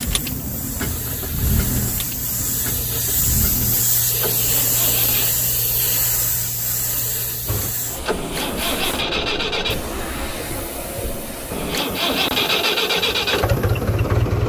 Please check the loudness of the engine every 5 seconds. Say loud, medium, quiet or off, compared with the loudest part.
medium, medium, loud.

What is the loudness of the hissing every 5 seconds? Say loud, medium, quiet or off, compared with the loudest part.
loud, loud, medium.